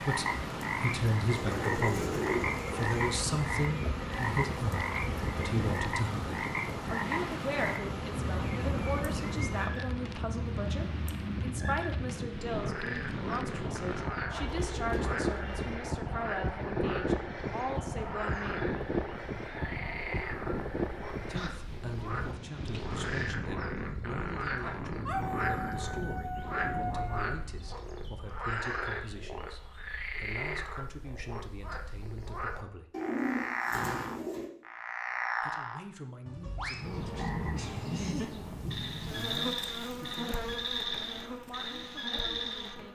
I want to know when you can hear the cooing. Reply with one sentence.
You can hear the cooing from 1.3 to 3.1 s, from 14.3 to 15.8 s and from 32.9 to 34.5 s.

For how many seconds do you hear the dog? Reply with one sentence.
You can hear the dog for 2 seconds altogether.